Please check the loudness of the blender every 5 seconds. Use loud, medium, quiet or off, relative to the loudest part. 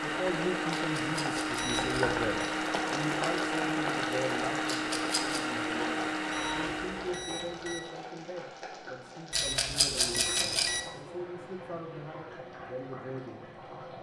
loud, loud, off.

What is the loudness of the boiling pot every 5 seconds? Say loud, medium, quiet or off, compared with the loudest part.
loud, medium, medium.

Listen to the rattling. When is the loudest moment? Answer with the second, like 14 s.
10 s.